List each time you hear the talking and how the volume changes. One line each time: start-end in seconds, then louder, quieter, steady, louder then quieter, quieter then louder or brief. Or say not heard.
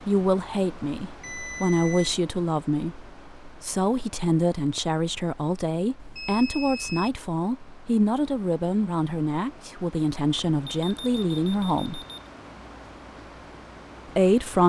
0.1-12.0 steady
14.2-14.6 brief.